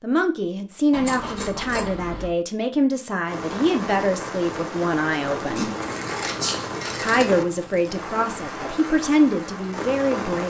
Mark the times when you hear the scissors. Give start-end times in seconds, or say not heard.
0.9-2.3, 5.5-7.3.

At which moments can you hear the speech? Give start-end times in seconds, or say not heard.
0.0-5.7, 7.0-10.4.